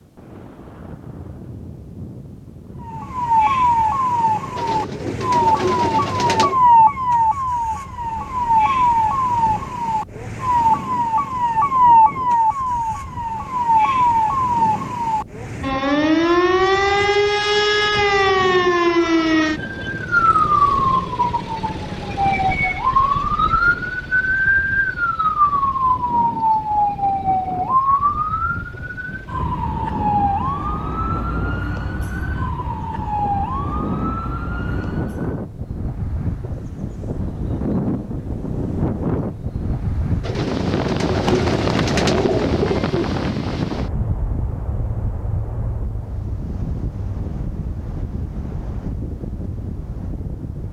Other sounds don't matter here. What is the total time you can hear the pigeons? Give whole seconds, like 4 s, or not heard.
5 s.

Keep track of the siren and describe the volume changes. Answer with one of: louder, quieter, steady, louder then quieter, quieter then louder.
quieter.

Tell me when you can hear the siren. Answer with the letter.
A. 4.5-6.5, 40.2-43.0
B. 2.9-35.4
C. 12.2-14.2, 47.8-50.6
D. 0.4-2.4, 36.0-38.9
B.